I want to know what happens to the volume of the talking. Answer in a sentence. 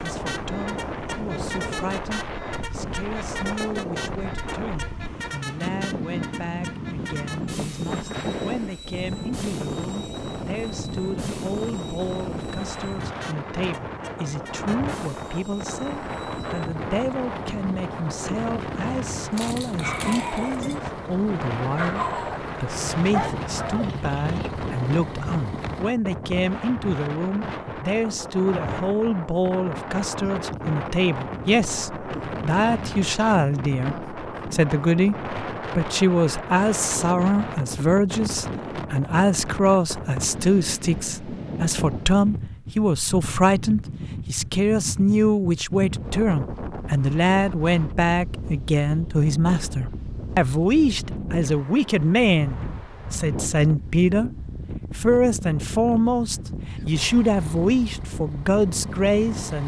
The loudness of the talking goes up.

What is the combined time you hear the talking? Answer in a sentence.
The talking can be heard for 59 seconds in total.